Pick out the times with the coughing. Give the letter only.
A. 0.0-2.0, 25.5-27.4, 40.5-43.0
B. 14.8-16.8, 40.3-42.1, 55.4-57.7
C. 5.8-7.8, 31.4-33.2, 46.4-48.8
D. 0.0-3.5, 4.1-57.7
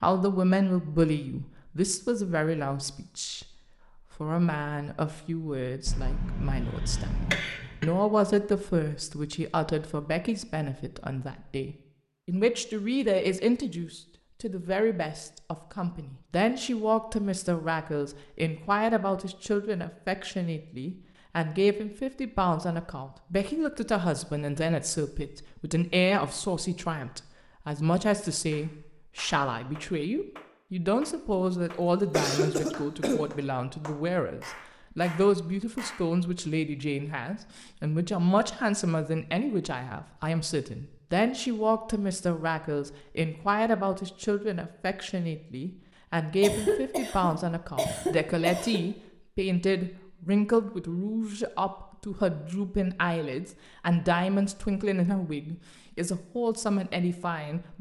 C.